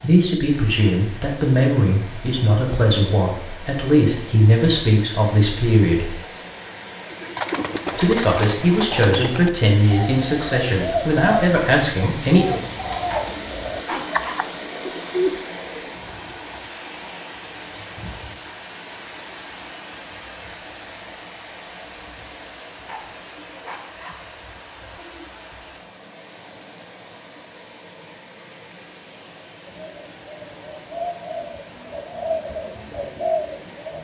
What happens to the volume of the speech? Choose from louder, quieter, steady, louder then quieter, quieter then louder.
steady.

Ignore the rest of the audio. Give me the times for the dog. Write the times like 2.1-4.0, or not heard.
13.1-14.4, 22.9-24.2.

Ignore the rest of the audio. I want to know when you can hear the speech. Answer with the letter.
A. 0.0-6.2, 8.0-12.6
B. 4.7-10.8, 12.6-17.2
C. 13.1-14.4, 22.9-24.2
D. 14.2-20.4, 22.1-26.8
A.